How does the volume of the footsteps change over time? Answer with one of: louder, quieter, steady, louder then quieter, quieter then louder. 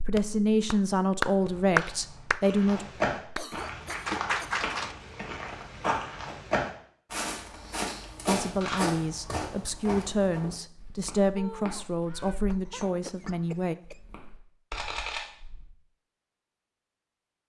quieter.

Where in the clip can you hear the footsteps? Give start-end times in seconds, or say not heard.
2.4-14.4.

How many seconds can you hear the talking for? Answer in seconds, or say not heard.
8 s.